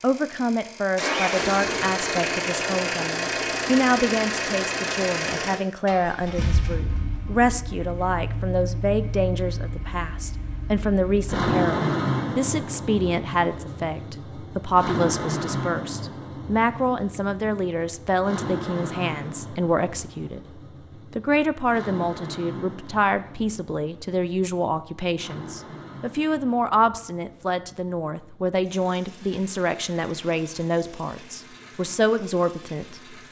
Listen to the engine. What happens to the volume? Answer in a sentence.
The volume of the engine goes down.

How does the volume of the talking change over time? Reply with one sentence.
The loudness of the talking stays about the same.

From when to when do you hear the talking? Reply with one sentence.
You can hear the talking from 0.0 to 33.1 s.